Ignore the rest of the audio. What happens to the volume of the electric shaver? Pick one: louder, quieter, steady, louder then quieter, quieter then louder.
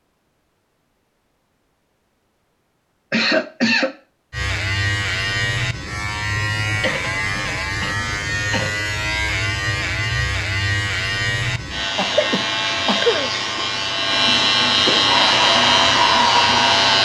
louder.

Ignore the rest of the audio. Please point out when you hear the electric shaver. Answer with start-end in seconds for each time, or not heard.
4.3-17.0.